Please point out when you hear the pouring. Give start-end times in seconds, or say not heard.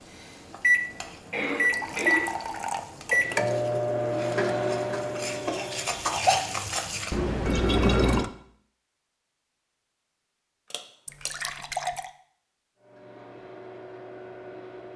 1.7-2.9, 7.1-8.3, 11.1-12.1.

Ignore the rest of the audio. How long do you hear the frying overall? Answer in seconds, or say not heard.
7 s.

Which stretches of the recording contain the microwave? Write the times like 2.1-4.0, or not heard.
0.1-6.1, 12.8-14.9.